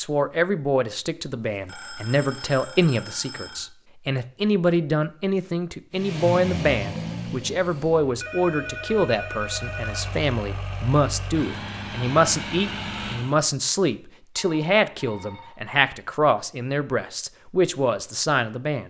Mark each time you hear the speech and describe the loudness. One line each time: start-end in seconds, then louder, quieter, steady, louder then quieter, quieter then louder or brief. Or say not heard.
0.0-18.8 steady.